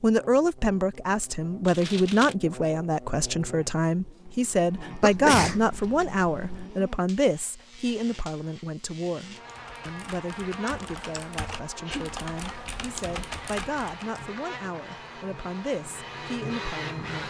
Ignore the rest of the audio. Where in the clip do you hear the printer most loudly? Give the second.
17 s.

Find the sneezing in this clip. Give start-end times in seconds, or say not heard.
5.0-6.7, 11.8-12.2.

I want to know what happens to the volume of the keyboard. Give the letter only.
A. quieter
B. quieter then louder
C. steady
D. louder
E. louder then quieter
D.